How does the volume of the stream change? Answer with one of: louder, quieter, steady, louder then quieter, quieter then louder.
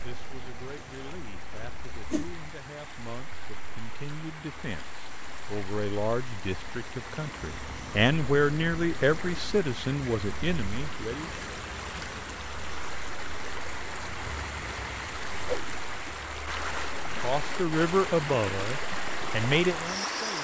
louder.